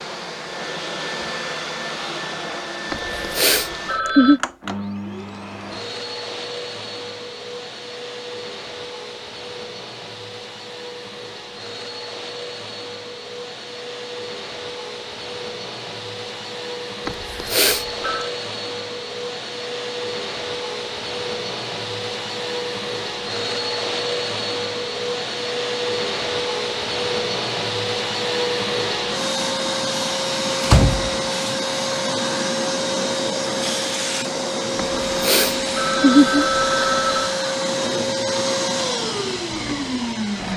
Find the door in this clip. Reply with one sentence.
You can hear the door from 30.6 to 31.6 s.